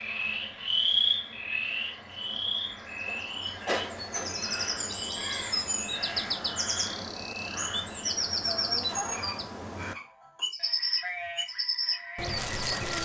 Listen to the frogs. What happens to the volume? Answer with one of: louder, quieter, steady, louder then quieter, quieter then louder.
quieter.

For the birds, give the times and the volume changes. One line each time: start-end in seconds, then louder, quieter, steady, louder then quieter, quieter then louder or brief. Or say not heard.
0.0-13.0 louder.